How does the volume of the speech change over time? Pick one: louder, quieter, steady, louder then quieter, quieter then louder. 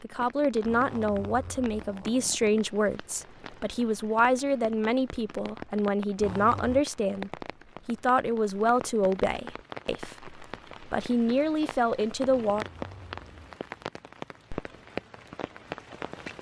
steady.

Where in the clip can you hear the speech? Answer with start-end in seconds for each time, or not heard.
0.0-12.7.